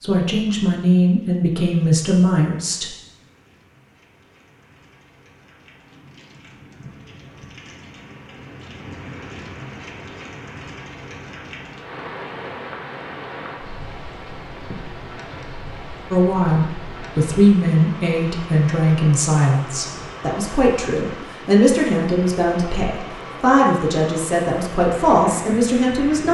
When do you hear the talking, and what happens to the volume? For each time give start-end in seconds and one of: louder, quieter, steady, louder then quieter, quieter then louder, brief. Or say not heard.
0.0-2.9 brief
16.1-26.2 steady.